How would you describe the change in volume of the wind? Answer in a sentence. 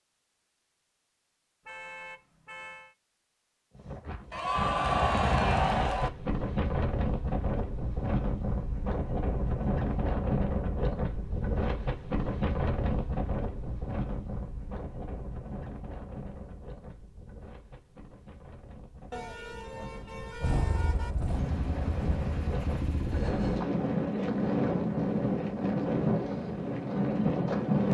The loudness of the wind goes down, then up.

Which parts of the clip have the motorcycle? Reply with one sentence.
The motorcycle can be heard from 20.4 to 23.6 s.